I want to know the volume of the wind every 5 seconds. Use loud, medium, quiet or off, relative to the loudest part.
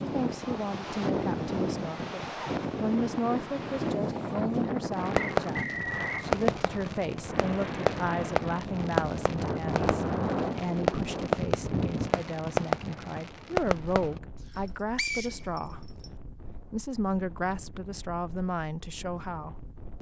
loud, loud, loud, quiet.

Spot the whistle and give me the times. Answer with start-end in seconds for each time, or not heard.
5.2-6.2, 14.9-16.1.